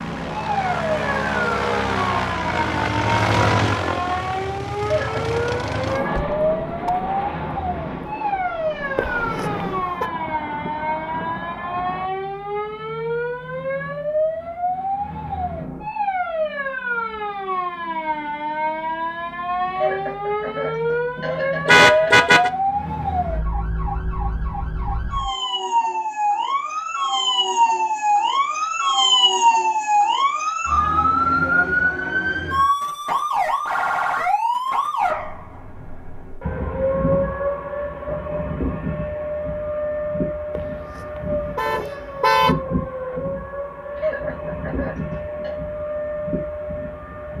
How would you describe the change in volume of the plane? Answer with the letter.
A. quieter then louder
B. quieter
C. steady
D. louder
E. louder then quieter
B.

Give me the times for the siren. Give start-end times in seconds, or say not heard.
0.0-47.3.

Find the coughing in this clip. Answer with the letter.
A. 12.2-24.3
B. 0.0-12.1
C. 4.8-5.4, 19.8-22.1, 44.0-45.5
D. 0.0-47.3
C.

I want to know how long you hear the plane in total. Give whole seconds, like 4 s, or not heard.
12 s.